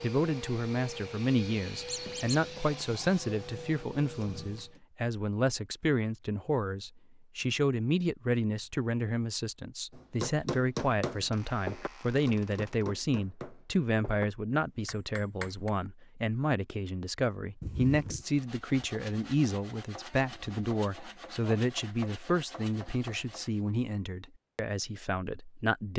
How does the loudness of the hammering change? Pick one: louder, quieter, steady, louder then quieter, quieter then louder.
quieter.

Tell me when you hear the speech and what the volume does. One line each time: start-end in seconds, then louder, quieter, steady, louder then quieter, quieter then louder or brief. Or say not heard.
0.0-25.9 steady.